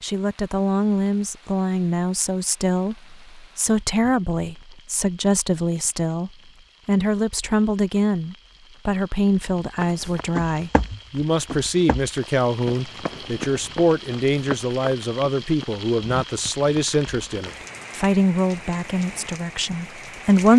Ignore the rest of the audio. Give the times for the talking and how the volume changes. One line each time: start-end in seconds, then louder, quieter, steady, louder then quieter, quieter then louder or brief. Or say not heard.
0.0-20.5 steady.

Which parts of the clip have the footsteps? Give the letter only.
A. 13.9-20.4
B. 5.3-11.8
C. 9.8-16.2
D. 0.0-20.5
C.